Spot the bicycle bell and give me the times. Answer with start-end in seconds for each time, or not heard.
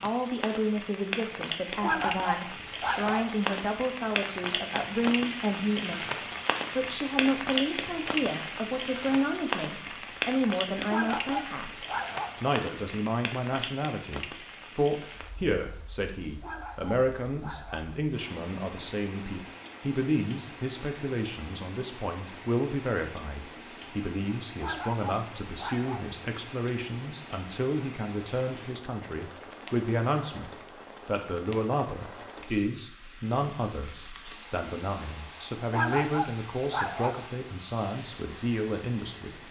not heard.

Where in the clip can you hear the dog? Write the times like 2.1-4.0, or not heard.
1.8-3.4, 10.8-12.4, 16.4-17.9, 24.6-26.1, 35.7-37.2.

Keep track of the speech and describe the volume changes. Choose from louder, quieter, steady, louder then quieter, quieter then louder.
steady.